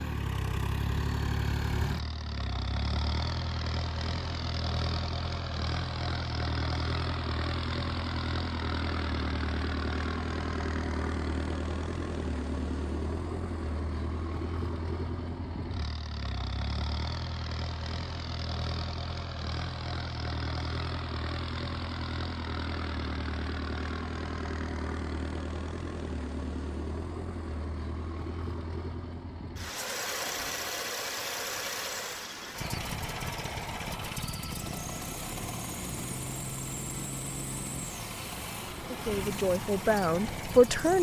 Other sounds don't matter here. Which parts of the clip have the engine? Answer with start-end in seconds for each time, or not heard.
0.0-40.9.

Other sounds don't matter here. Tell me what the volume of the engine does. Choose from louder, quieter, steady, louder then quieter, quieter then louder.
steady.